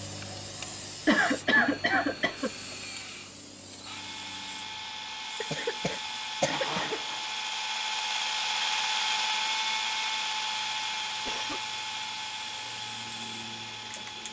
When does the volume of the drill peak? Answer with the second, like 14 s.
9 s.